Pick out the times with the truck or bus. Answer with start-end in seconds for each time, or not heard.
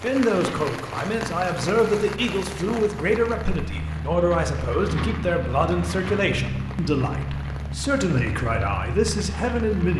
0.0-9.9.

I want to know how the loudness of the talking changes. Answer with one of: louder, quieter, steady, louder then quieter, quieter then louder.
steady.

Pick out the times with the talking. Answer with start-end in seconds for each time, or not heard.
0.0-9.9.